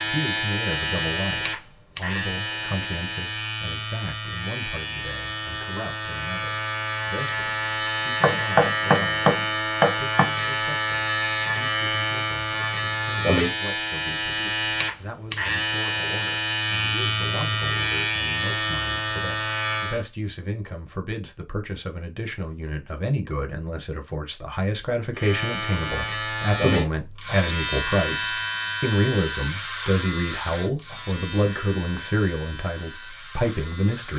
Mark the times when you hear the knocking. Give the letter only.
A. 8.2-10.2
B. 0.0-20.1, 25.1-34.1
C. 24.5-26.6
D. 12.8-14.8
A.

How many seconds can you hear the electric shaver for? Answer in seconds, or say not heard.
29 s.